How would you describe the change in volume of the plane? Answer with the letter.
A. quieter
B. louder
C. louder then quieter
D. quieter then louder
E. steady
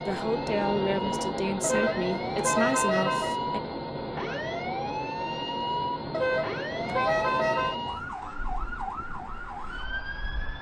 A.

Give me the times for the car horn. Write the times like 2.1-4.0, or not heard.
1.6-3.4, 6.1-7.8.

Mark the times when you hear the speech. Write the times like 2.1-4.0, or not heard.
0.0-3.6.